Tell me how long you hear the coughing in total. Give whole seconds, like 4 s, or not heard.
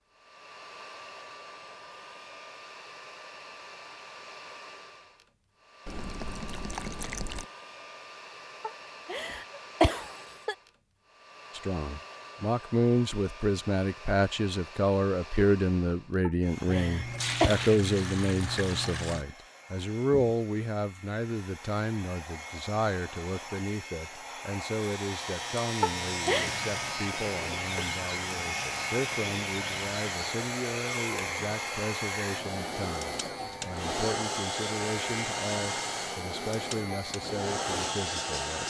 4 s.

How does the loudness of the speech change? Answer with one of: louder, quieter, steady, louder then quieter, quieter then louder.
quieter.